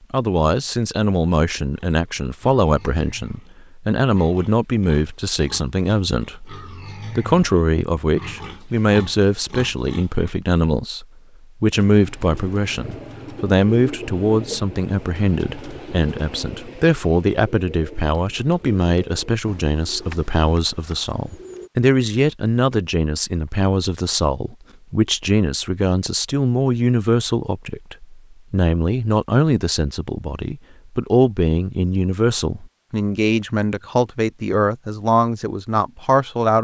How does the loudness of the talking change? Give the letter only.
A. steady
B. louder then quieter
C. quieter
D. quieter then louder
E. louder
A.